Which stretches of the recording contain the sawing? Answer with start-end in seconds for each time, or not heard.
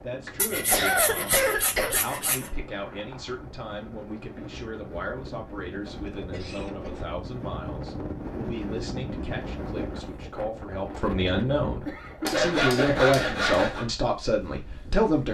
0.3-2.5, 12.2-13.8.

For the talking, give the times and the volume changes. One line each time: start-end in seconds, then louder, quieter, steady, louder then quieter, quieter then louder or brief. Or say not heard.
0.0-15.3 louder.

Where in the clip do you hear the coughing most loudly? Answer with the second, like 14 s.
1 s.